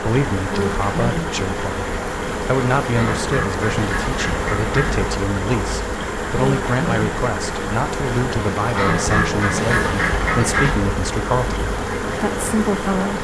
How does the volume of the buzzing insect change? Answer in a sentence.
The volume of the buzzing insect stays about the same.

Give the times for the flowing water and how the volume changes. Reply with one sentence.
You can hear the flowing water from 0.0 to 13.1 s, at a steady volume.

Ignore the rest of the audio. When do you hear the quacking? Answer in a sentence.
You can hear the quacking from 2.9 to 4.9 s and from 8.7 to 10.7 s.